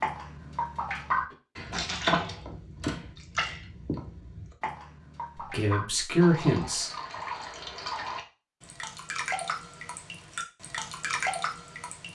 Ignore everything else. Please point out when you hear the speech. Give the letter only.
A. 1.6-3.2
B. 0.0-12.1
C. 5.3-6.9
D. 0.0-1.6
C.